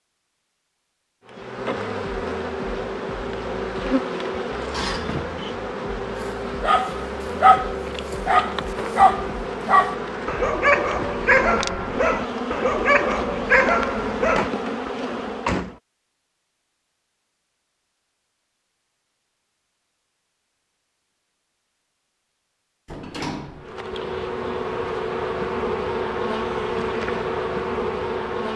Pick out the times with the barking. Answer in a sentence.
The barking can be heard from 6.6 to 14.9 s.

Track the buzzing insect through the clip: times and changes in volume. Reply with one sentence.
You can hear the buzzing insect from 1.2 to 15.8 s, at a steady volume; and from 23.5 to 28.5 s, at a steady volume.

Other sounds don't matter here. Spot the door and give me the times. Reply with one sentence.
The door can be heard from 4.7 to 5.5 s, from 14.3 to 15.8 s and from 22.9 to 23.7 s.